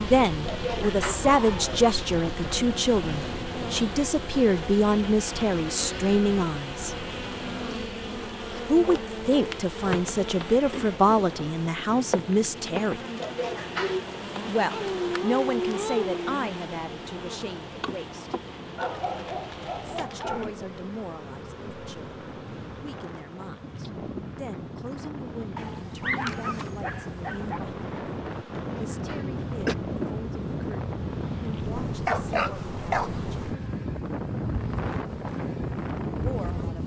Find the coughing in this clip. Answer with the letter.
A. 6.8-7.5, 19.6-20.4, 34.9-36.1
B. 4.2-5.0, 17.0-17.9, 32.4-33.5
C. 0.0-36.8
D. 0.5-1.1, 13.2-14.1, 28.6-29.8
D.